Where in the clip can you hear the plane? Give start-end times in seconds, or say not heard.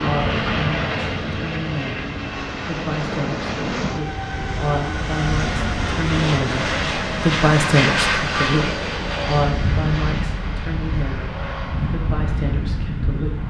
0.0-13.4.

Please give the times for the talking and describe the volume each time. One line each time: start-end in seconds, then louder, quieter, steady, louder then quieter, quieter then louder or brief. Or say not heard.
0.0-13.4 louder then quieter.